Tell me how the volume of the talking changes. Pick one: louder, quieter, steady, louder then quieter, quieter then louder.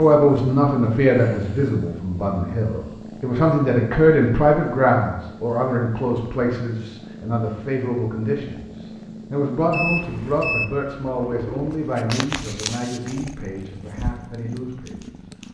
quieter.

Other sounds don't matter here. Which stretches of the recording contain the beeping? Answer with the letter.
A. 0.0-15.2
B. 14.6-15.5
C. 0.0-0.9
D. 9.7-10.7
D.